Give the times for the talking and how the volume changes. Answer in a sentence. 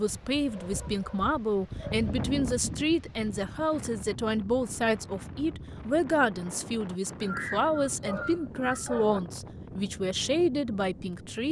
The talking can be heard from 0.0 to 11.4 s, at a steady volume.